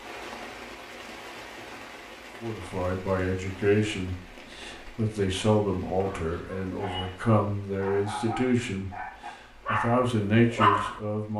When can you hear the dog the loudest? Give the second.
11 s.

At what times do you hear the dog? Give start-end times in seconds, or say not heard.
6.0-11.0.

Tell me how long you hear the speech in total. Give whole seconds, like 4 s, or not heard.
8 s.